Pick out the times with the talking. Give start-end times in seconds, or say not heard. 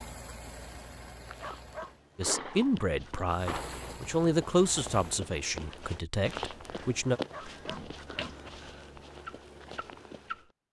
2.1-7.2.